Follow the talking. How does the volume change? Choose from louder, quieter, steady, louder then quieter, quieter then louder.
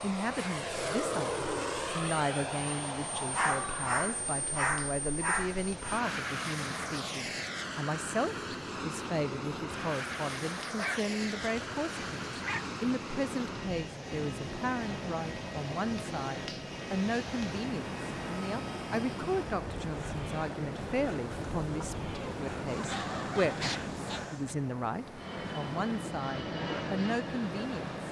steady.